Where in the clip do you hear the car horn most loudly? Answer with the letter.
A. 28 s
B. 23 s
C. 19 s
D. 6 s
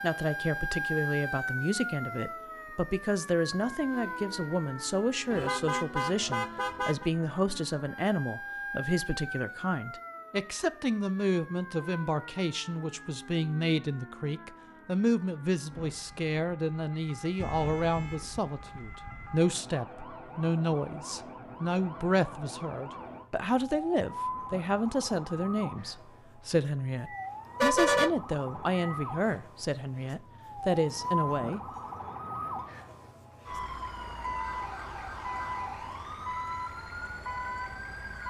A.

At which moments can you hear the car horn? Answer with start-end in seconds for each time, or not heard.
5.3-7.1, 17.4-19.4, 27.1-28.9.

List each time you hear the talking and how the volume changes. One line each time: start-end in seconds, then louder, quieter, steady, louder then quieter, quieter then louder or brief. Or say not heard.
0.0-31.6 steady.